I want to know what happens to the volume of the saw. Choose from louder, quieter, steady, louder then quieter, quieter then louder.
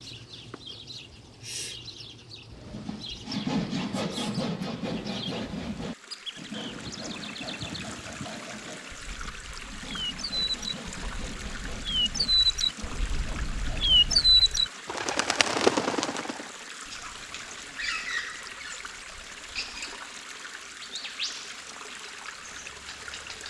quieter.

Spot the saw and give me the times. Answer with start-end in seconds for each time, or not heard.
2.5-14.4.